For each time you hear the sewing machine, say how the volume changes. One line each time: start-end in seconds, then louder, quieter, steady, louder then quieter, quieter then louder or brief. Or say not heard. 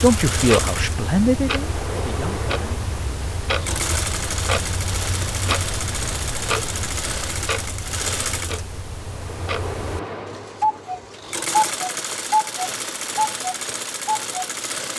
0.0-14.9 steady.